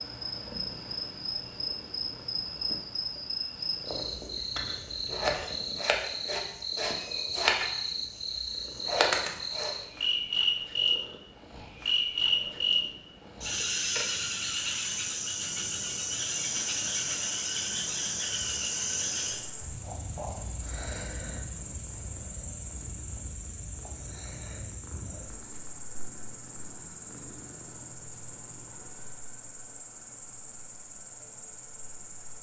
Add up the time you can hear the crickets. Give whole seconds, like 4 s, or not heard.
32 s.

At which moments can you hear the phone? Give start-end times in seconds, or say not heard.
not heard.